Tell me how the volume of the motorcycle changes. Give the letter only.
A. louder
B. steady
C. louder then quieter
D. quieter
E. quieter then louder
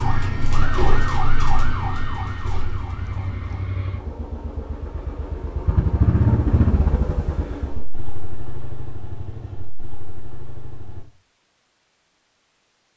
C.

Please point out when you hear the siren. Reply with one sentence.
You can hear the siren from 0.0 to 3.8 s.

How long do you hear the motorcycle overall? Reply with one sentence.
The motorcycle can be heard for 11 seconds in total.